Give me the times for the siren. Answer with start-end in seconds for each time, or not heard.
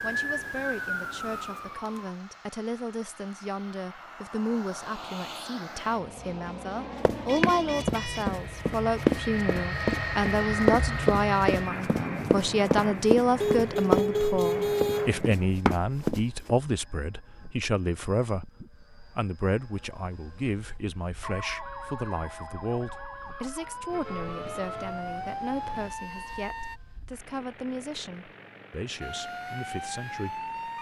0.0-2.1, 21.2-26.8, 29.0-30.7.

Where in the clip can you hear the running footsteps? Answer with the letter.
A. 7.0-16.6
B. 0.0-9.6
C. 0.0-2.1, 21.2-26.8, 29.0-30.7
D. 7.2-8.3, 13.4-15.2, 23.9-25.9
A.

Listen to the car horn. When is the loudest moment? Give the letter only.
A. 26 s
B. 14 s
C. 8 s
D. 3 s
B.